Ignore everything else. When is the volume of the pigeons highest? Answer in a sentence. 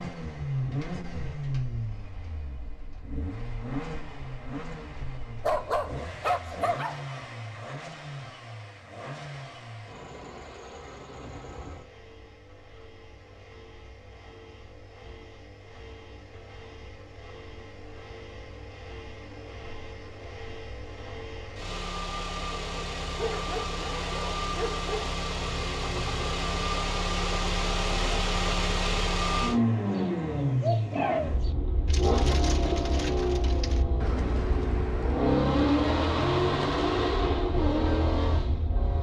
The loudest moment of the pigeons is at 31 seconds.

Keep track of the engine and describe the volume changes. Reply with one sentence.
The loudness of the engine goes down, then up.